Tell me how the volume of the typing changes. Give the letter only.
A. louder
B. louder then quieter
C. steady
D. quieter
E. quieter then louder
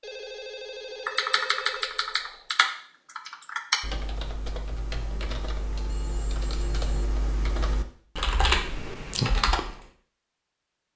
E.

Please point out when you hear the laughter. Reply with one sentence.
The laughter can't be heard in this clip.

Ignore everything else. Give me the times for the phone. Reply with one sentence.
You can hear the phone from 0.0 to 2.5 s and from 5.8 to 6.9 s.